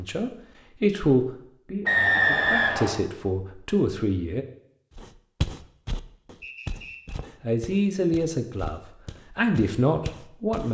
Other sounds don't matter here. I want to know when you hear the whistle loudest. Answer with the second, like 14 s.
2 s.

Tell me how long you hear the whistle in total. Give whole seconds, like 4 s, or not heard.
2 s.